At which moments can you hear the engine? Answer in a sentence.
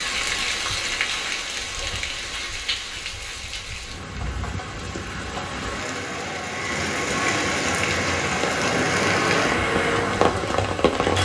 The engine can be heard from 8.6 to 11.1 s.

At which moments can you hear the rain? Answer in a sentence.
You can hear the rain from 0.0 to 11.1 s.